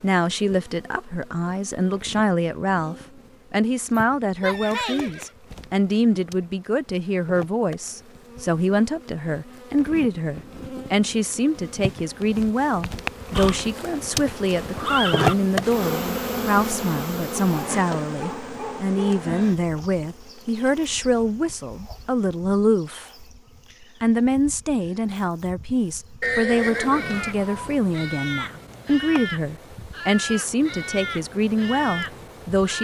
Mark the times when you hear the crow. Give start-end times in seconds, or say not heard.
26.8-32.7.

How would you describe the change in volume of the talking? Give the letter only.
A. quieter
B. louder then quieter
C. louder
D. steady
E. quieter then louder
D.